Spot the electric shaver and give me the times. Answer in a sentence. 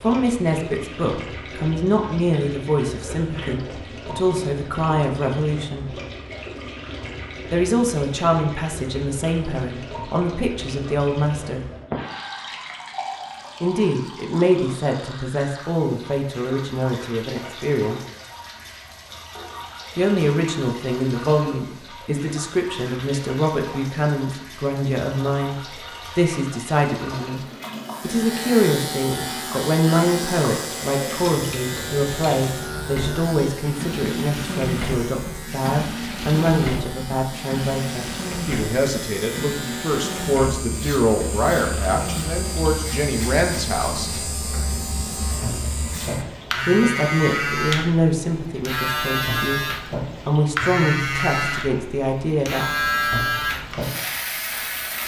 You can hear the electric shaver from 27.9 to 55.0 s.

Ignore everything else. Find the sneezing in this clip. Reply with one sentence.
The sneezing can be heard from 2.9 to 3.6 s.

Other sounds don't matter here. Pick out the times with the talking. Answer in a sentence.
You can hear the talking from 0.0 to 6.0 s, from 7.5 to 11.6 s, from 13.6 to 18.0 s, from 19.9 to 44.1 s, from 46.6 to 49.6 s and from 50.2 to 52.6 s.